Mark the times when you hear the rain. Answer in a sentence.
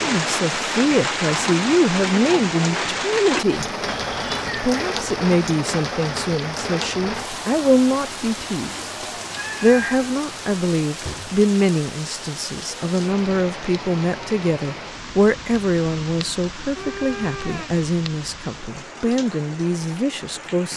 You can hear the rain from 0.0 to 20.7 s.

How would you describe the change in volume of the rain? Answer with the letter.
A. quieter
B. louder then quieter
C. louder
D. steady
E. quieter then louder
A.